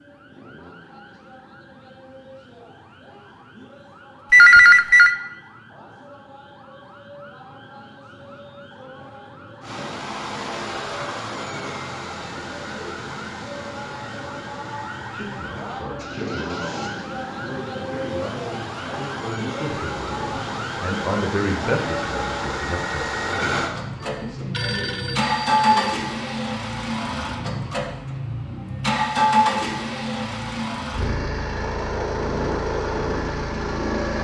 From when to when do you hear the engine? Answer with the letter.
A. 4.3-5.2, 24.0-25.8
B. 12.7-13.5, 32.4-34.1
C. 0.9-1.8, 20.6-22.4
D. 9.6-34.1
D.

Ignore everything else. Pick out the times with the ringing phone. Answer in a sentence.
You can hear the ringing phone from 4.3 to 5.2 s and from 24.0 to 25.8 s.